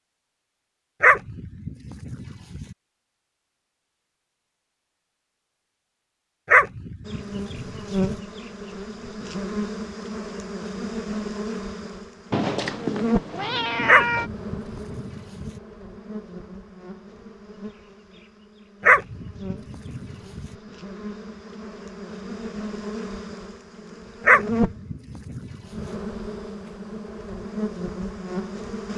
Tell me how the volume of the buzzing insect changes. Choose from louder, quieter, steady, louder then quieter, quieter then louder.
quieter then louder.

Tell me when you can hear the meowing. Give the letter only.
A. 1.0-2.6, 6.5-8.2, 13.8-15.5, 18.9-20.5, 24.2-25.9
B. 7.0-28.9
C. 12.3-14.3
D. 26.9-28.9
C.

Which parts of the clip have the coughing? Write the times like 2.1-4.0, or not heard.
not heard.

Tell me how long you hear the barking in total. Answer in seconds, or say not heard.
8 s.